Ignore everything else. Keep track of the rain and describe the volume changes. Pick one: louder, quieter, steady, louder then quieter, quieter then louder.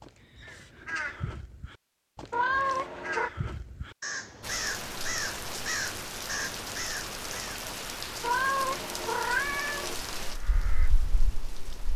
quieter.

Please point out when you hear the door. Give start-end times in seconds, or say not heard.
not heard.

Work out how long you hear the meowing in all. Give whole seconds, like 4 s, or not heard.
3 s.